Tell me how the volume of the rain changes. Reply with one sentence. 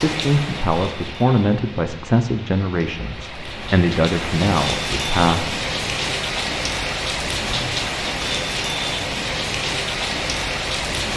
The volume of the rain goes up.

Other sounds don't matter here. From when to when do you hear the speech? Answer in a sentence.
The speech can be heard from 0.0 to 5.6 s.